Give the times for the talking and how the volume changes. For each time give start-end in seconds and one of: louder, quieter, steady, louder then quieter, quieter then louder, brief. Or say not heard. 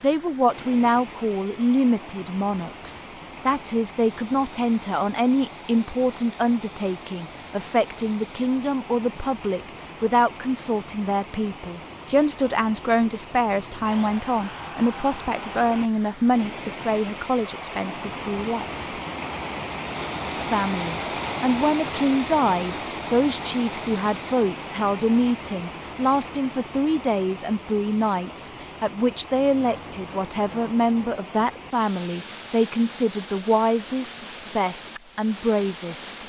0.0-18.9 steady
20.4-36.2 steady.